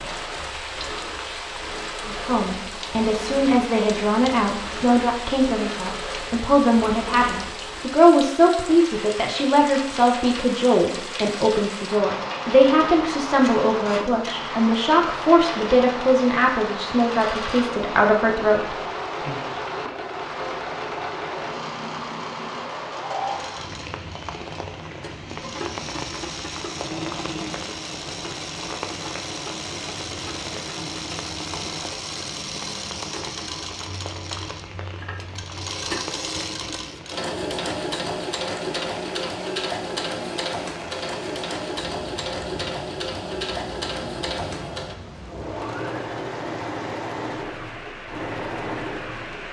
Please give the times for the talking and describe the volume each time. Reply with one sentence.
You can hear the talking from 2.0 to 19.4 s, at a steady volume.